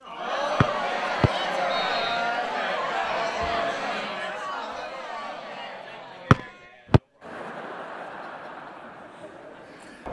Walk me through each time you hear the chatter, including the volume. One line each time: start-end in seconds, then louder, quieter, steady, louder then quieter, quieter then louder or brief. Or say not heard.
0.0-10.0 quieter.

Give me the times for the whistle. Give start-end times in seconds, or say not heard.
0.6-2.2, 6.3-7.0.